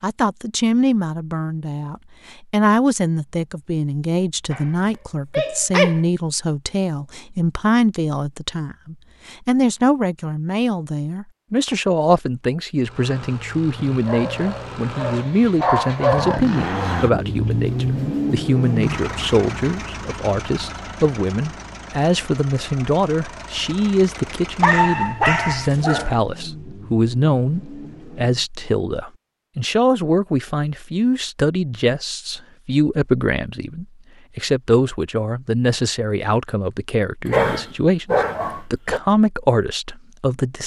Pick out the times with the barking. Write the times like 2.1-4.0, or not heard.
4.5-6.0, 13.8-16.4, 24.6-26.1, 37.2-39.0.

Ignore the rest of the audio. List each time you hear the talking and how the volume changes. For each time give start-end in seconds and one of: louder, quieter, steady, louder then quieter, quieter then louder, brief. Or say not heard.
0.0-40.6 steady.